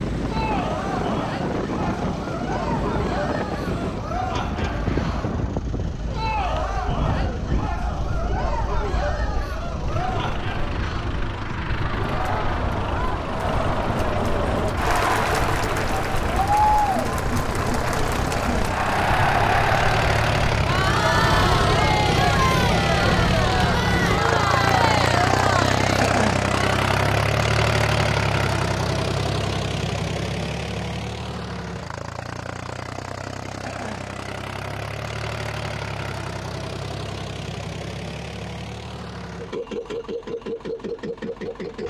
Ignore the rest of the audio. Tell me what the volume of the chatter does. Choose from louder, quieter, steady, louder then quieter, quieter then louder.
louder.